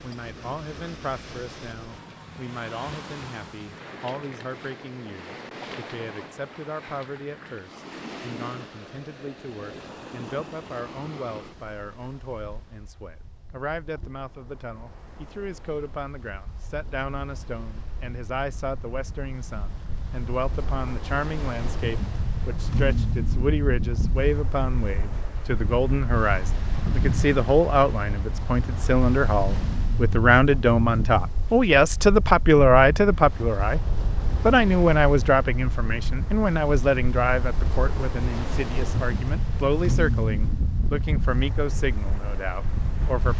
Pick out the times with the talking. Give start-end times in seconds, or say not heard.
0.0-43.3.